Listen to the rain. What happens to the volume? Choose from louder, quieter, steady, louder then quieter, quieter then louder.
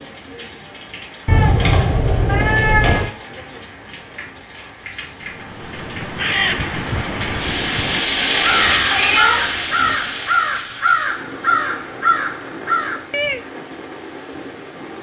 louder then quieter.